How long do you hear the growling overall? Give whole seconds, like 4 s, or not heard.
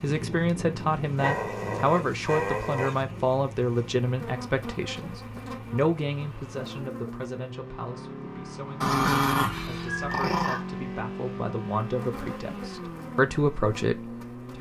4 s.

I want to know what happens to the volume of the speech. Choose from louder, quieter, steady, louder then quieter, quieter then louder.
quieter then louder.